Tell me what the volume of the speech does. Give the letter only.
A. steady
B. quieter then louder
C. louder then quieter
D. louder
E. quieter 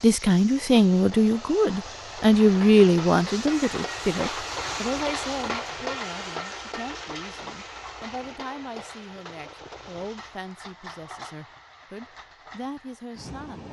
E.